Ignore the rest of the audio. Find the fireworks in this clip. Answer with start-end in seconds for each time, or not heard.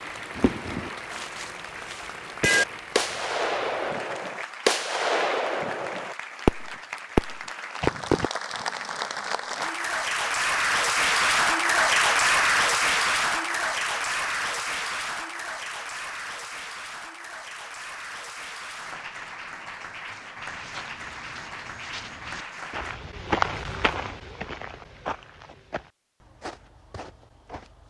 0.3-8.3.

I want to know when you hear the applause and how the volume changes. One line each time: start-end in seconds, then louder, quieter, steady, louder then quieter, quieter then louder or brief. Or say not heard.
0.0-23.0 louder then quieter.